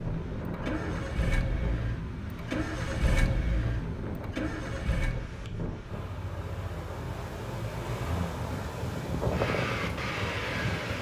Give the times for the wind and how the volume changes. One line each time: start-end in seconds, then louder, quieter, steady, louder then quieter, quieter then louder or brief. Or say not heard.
0.0-10.9 louder.